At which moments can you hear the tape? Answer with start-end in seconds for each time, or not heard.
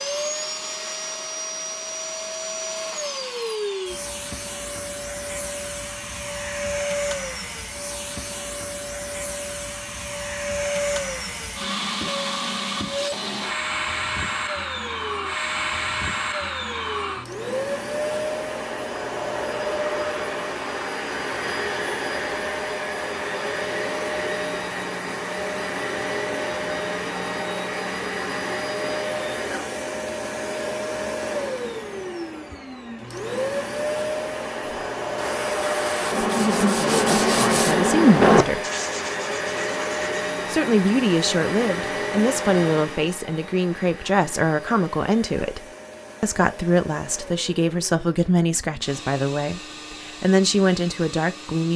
not heard.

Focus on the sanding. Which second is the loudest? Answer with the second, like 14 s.
38 s.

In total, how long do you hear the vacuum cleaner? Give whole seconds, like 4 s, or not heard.
52 s.